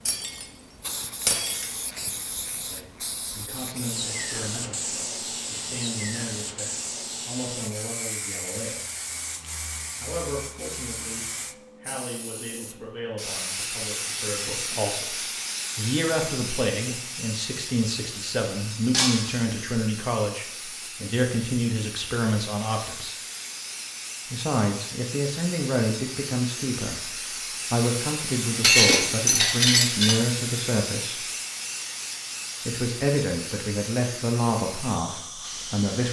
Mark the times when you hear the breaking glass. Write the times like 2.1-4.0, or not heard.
0.1-0.5, 1.2-1.7, 18.9-19.4, 28.6-30.1.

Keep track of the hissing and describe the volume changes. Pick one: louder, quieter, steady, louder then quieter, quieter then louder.
steady.